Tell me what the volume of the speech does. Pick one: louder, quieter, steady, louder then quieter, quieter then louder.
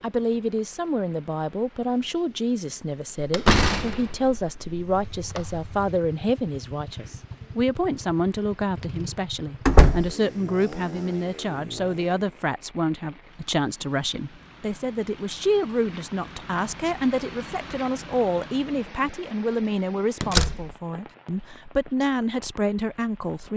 steady.